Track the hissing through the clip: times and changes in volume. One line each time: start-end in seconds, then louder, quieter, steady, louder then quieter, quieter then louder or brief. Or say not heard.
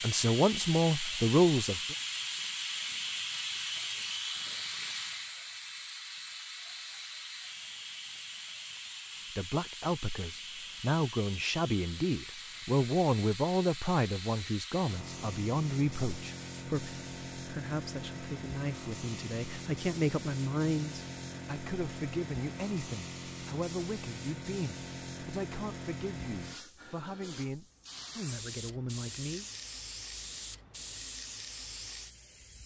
0.0-32.6 quieter.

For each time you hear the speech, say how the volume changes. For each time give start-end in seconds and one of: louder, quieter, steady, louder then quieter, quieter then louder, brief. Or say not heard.
0.0-1.9 brief
9.3-29.4 quieter.